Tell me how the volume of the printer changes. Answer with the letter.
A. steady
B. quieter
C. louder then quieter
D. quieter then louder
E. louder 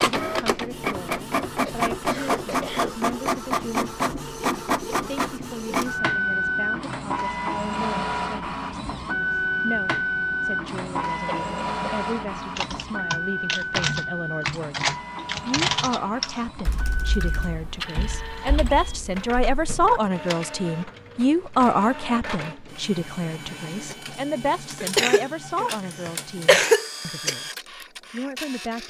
B.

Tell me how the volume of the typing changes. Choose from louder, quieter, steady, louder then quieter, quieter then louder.
quieter.